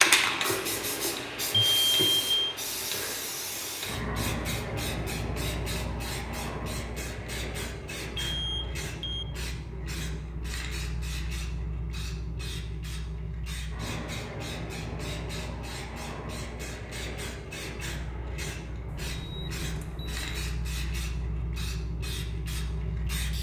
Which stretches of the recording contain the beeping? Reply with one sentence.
You can hear the beeping from 1.5 to 2.6 s, from 8.2 to 9.2 s and from 18.9 to 20.4 s.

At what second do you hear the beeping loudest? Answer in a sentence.
The volume of the beeping peaks at 2 seconds.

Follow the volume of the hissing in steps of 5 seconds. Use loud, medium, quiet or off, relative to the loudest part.
loud, medium, medium, medium, medium.